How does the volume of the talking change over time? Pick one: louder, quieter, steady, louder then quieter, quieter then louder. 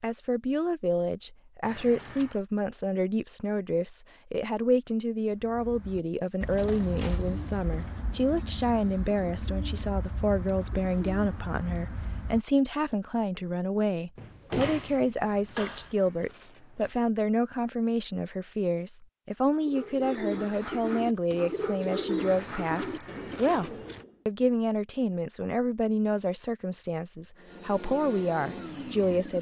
steady.